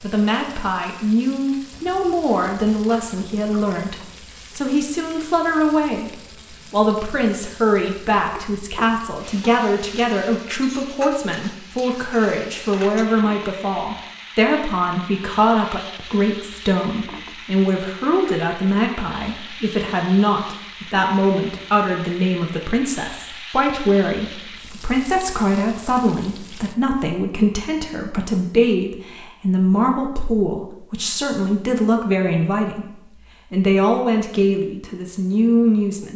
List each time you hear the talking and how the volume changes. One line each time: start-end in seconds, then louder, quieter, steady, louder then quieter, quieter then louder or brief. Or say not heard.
0.0-36.1 steady.